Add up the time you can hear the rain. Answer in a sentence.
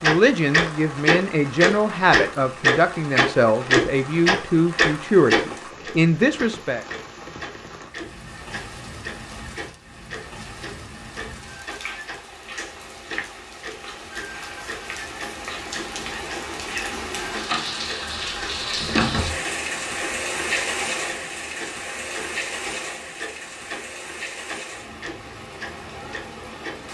The rain can be heard for 27 seconds in total.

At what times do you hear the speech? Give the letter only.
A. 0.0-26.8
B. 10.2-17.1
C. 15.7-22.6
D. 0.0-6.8
D.